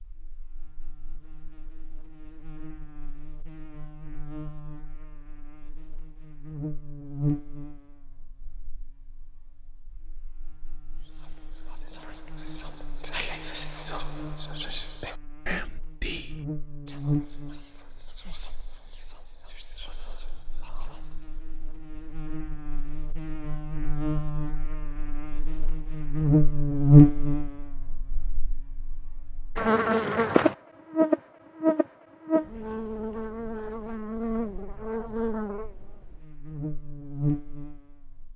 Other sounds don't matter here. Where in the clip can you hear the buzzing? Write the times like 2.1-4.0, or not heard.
0.0-38.3.